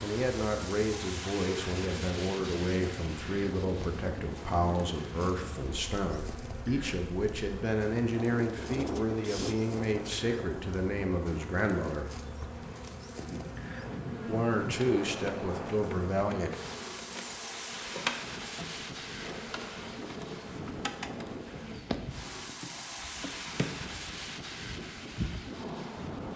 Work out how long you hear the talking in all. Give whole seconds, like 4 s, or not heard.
14 s.